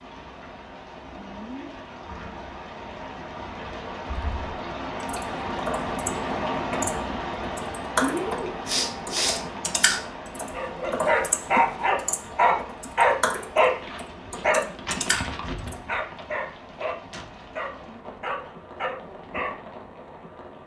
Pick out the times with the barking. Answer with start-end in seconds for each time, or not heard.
10.5-19.6.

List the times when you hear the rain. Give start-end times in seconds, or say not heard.
0.0-20.6.